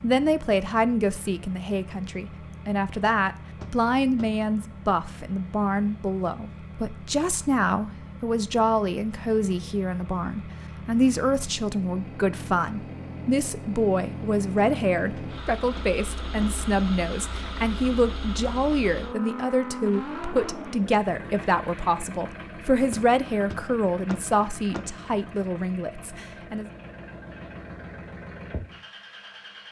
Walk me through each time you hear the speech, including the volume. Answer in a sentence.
The speech can be heard from 0.0 to 26.6 s, at a steady volume.